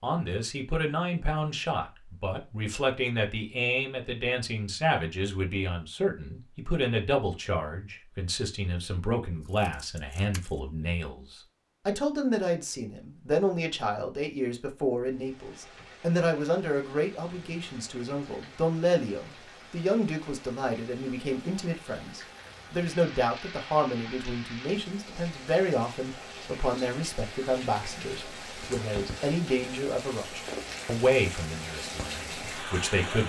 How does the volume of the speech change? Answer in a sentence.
The volume of the speech stays about the same.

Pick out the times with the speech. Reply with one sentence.
You can hear the speech from 0.0 to 33.2 s.